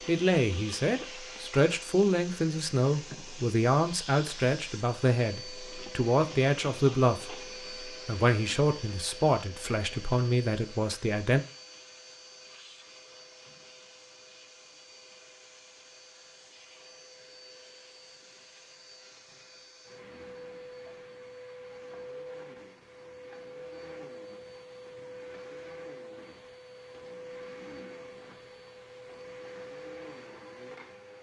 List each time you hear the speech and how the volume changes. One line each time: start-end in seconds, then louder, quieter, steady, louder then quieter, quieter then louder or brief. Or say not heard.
0.1-11.4 steady.